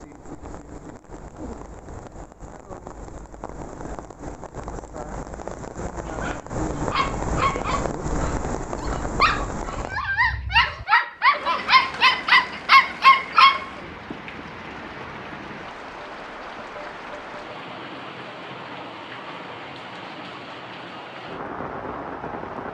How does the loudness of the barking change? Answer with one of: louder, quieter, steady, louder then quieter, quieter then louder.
louder.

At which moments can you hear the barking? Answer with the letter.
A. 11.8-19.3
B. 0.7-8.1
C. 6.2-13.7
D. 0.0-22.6
C.